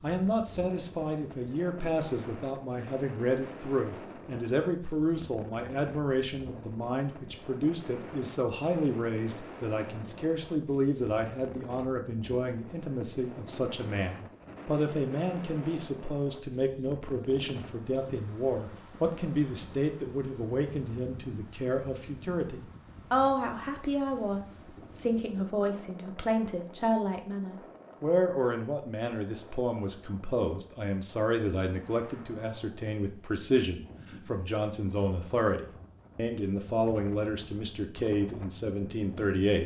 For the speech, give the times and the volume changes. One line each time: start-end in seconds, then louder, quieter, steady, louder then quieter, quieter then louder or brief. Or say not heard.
0.0-39.6 steady.